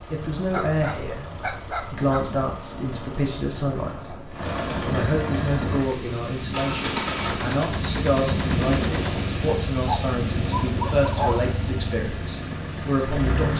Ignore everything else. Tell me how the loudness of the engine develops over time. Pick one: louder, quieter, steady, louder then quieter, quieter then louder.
louder.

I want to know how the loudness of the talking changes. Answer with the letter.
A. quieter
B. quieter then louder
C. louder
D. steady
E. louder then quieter
D.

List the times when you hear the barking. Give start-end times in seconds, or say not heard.
0.5-2.3, 9.8-11.5.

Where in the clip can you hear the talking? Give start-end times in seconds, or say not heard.
0.1-13.5.